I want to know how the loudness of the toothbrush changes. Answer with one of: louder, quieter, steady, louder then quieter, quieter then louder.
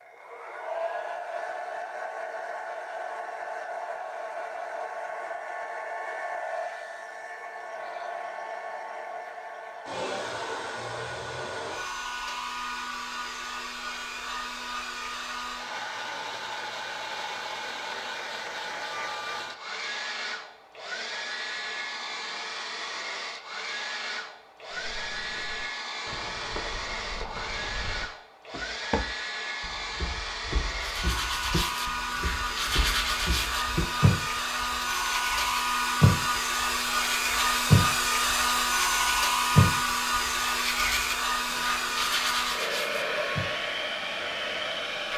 louder then quieter.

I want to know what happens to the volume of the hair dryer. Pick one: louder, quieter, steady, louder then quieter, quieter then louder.
louder.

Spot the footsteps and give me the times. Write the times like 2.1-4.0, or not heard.
24.7-34.1.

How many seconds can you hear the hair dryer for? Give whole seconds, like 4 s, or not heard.
45 s.